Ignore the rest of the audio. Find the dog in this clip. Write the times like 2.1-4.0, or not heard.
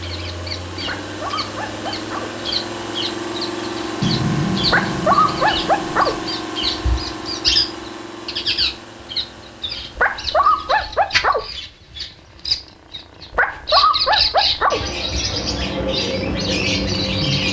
0.8-2.4, 4.7-6.2, 9.9-11.5, 13.3-14.8.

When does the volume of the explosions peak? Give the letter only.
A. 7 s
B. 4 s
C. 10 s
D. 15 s
B.